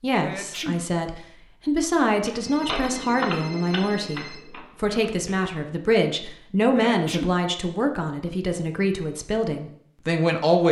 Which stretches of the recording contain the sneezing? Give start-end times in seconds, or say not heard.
0.2-0.8, 6.7-7.3.